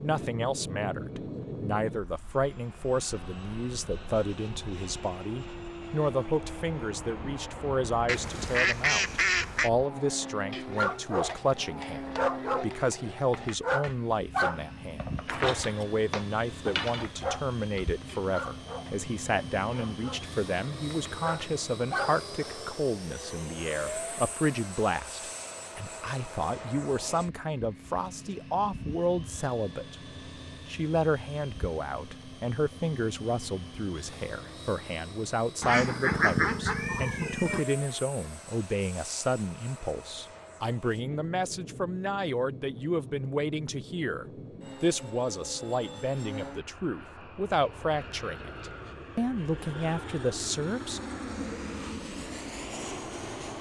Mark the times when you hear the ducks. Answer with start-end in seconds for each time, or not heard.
8.1-9.7, 35.6-37.6.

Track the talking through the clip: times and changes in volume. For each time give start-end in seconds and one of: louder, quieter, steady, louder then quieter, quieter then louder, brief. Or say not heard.
0.0-29.9 steady
30.6-51.0 steady.